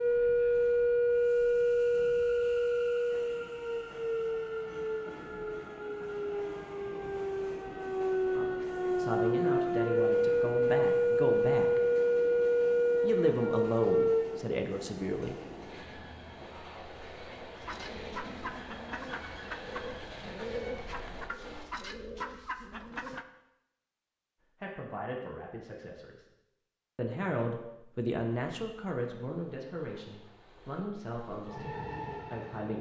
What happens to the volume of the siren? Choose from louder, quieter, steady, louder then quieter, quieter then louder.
quieter then louder.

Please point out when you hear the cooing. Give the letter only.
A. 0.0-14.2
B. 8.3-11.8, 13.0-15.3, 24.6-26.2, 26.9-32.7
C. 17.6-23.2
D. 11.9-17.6
C.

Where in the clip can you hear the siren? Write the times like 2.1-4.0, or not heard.
0.0-14.2.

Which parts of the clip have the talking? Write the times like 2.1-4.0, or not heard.
8.3-11.8, 13.0-15.3, 24.6-26.2, 26.9-32.7.